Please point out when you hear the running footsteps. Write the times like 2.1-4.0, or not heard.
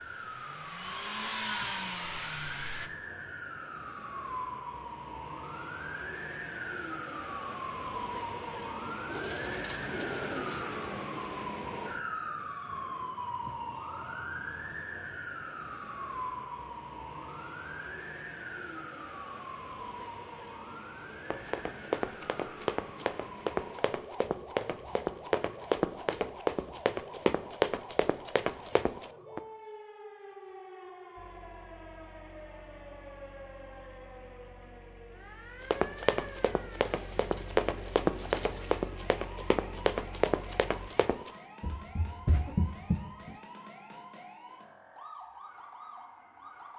21.3-29.4, 35.6-43.4.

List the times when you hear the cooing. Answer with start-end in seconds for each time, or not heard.
9.1-10.7, 36.8-38.8.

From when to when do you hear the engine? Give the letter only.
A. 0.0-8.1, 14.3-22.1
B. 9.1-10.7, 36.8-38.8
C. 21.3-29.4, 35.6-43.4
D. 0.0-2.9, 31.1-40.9
D.